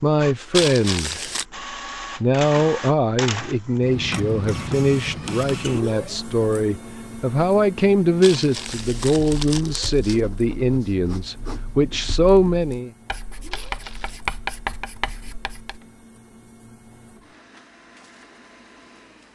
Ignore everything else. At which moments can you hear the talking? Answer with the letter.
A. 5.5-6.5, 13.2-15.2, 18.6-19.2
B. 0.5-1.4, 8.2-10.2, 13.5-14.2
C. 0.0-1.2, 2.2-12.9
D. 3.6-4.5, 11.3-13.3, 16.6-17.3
C.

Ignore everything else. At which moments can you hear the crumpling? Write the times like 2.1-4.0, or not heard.
0.5-1.4, 8.2-10.2, 13.5-14.2.